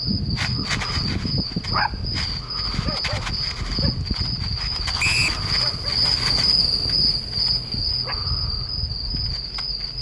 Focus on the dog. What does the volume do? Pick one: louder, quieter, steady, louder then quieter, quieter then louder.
quieter.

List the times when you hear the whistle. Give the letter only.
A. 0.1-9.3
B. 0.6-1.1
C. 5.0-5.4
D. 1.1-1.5
C.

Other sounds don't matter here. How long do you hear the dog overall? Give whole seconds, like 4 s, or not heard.
9 s.